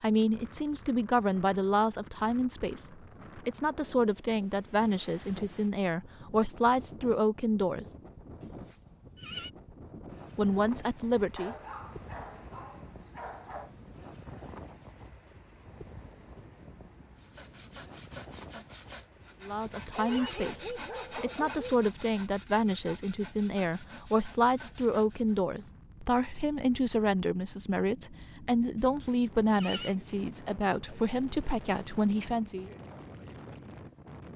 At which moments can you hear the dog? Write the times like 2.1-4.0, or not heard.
11.3-13.7, 19.3-21.8.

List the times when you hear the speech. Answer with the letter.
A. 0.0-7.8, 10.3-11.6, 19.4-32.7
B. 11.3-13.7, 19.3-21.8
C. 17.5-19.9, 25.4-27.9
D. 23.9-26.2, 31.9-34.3
A.